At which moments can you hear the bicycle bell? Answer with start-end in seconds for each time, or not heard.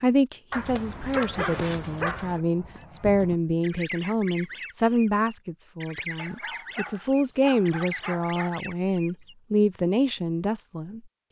not heard.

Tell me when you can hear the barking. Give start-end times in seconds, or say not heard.
0.5-2.4, 6.2-8.6.